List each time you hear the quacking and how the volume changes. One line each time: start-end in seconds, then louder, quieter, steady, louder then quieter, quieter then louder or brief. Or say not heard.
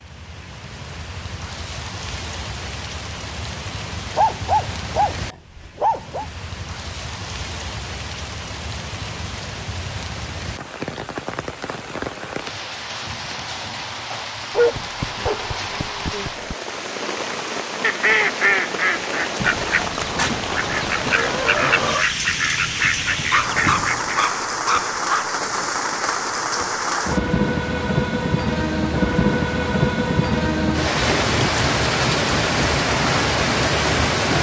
17.8-24.2 steady.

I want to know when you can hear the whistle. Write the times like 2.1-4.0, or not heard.
not heard.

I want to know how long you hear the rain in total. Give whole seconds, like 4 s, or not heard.
34 s.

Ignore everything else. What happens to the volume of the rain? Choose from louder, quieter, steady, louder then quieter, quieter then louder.
louder.